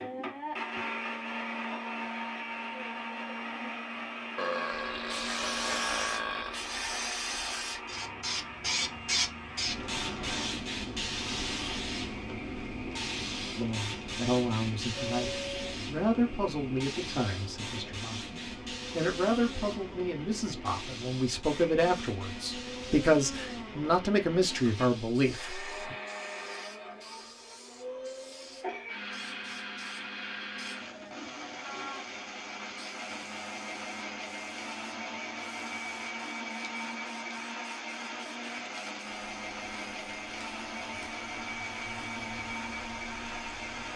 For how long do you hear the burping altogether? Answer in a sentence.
You can hear the burping for 2 seconds altogether.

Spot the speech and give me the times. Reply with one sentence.
The speech can be heard from 13.6 to 25.9 s.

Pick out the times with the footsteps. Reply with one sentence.
You can't hear the footsteps here.